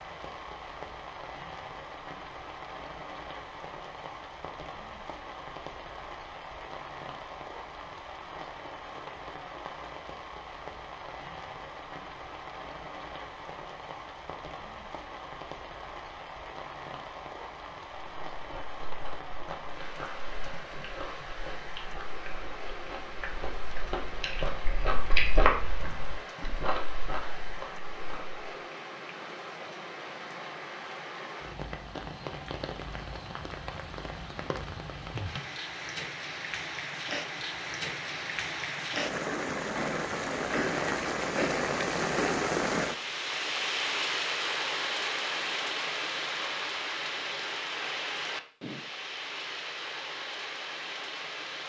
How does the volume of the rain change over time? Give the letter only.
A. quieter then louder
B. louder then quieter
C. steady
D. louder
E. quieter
D.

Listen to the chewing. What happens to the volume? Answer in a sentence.
The loudness of the chewing goes up, then down.